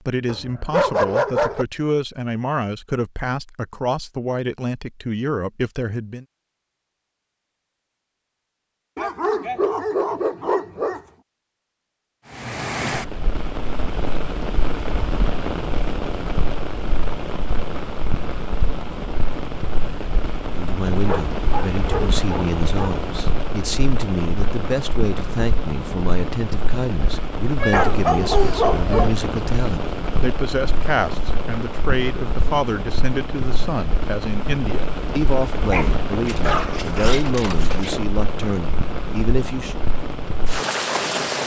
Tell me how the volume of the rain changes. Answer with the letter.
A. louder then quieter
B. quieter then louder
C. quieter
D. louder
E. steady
E.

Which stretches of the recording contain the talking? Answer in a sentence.
You can hear the talking from 0.1 to 6.2 s and from 20.5 to 39.8 s.